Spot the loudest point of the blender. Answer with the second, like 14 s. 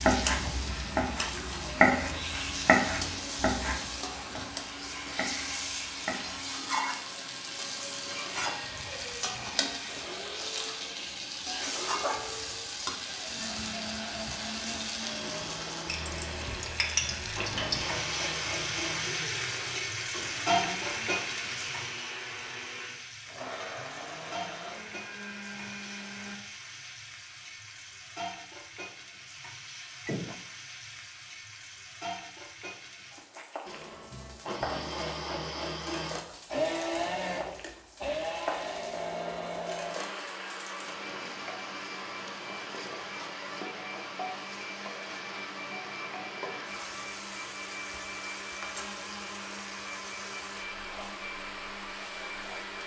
37 s.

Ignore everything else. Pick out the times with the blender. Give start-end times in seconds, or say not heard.
0.5-26.4, 33.6-52.8.